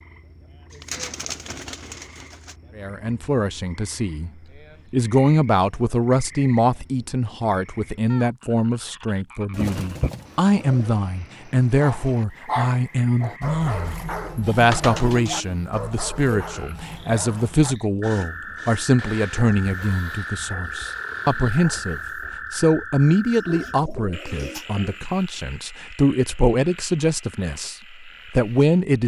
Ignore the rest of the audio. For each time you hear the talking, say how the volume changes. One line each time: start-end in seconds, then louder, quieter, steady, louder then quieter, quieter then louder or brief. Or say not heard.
2.8-4.3 brief
4.9-29.0 steady.